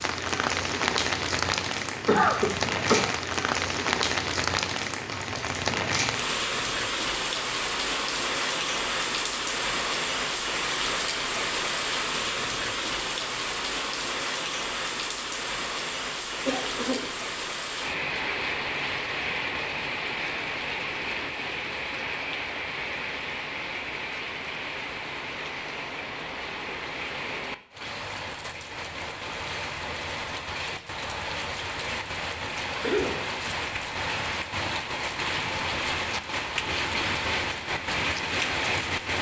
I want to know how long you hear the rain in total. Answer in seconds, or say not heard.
39 s.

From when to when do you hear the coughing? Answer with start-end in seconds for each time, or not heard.
2.0-3.1, 16.4-17.1, 32.8-33.5.